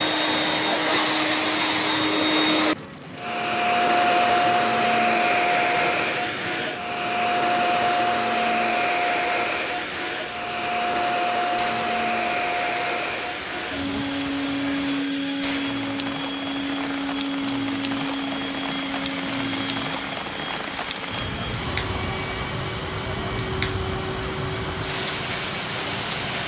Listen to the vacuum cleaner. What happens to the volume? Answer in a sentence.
The volume of the vacuum cleaner goes down.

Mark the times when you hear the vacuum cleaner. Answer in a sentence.
The vacuum cleaner can be heard from 0.0 to 26.4 s.